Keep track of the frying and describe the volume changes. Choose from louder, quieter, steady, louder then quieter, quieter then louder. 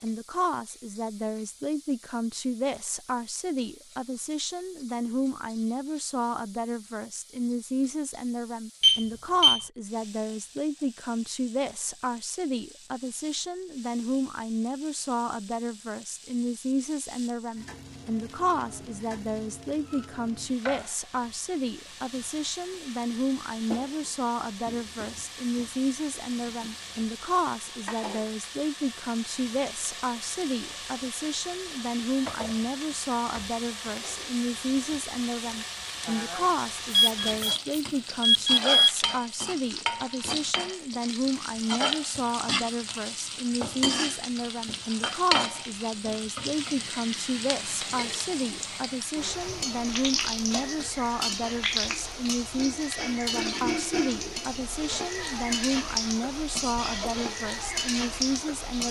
louder.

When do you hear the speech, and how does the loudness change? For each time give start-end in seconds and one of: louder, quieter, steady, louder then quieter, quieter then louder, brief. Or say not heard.
0.0-58.8 steady.